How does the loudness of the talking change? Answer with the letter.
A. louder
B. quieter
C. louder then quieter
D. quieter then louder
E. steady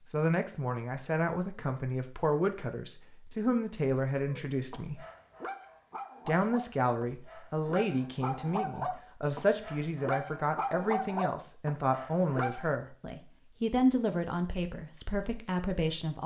E.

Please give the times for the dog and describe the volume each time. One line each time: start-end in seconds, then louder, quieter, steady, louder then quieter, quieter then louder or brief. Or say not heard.
4.2-12.8 louder.